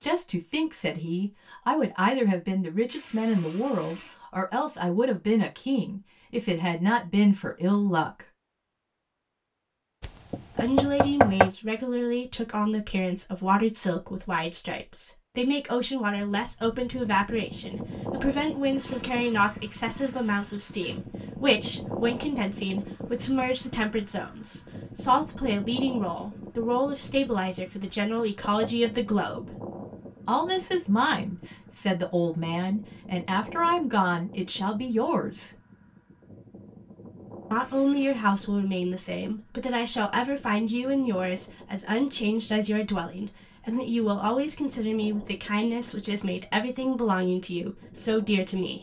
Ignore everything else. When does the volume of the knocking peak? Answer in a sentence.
The volume of the knocking peaks at 11 seconds.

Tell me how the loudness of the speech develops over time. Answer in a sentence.
The volume of the speech stays about the same.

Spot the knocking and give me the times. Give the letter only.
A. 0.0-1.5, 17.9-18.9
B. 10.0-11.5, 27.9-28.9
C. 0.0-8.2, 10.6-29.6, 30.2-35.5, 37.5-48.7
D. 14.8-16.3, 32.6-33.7
B.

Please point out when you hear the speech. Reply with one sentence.
The speech can be heard from 0.0 to 8.2 s, from 10.6 to 29.6 s, from 30.2 to 35.5 s and from 37.5 to 48.7 s.